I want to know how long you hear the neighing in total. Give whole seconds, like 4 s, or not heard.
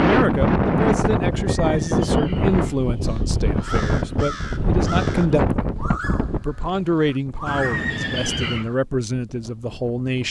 3 s.